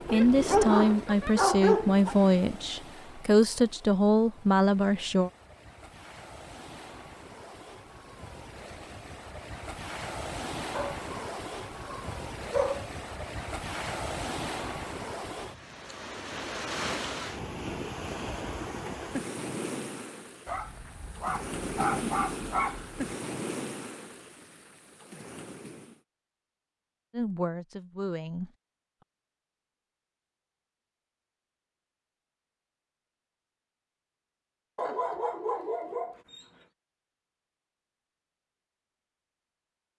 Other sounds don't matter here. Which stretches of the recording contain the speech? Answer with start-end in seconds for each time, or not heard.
0.1-5.3, 27.1-28.5.